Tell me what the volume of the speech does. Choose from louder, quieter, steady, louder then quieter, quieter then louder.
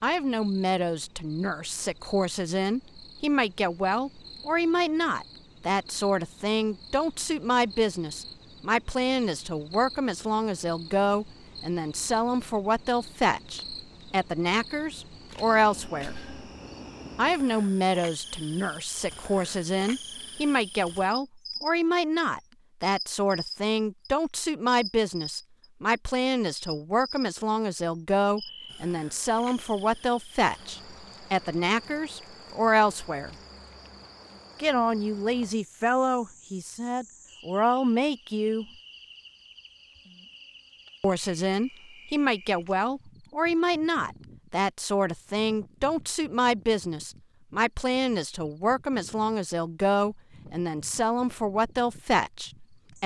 steady.